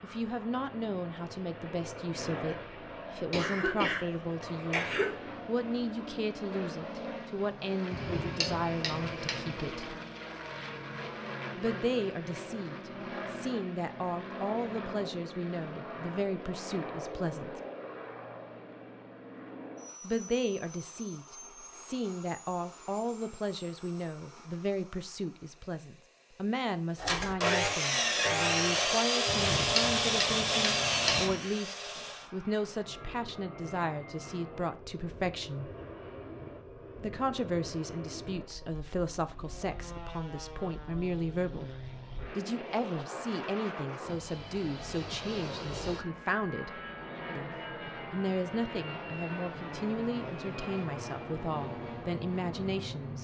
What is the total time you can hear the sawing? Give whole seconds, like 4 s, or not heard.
5 s.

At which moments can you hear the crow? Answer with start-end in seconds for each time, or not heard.
not heard.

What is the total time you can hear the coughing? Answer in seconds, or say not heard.
2 s.